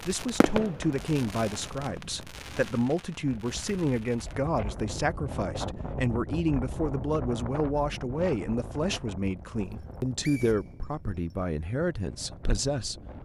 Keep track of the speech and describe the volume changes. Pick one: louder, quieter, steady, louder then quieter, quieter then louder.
steady.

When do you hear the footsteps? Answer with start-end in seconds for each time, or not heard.
not heard.